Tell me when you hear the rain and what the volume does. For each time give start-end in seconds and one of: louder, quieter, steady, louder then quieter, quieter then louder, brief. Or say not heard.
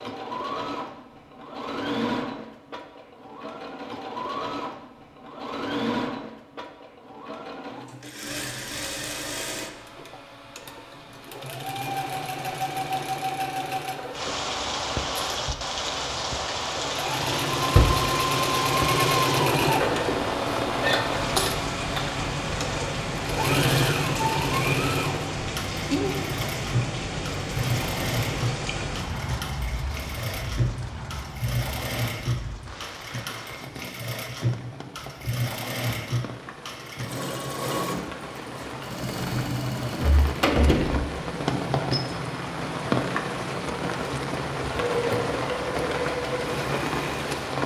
14.1-47.6 quieter then louder.